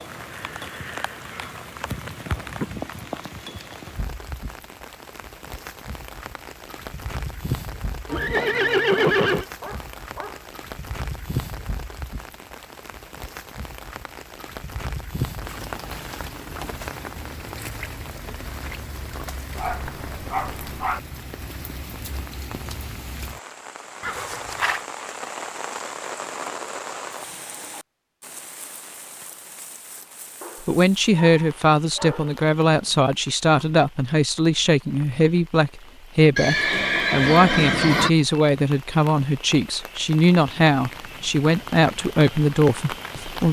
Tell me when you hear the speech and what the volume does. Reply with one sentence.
The speech can be heard from 30.6 to 43.4 s, at a steady volume.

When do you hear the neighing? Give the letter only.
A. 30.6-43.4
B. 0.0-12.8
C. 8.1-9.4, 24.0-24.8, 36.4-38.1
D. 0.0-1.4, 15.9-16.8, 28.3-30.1
C.